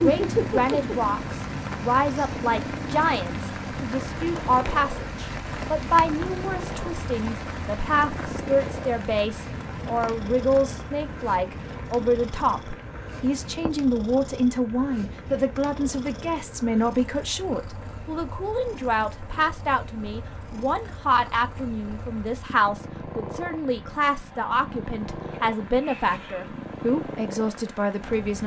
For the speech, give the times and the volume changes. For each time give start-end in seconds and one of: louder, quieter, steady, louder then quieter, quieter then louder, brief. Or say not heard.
0.0-28.4 steady.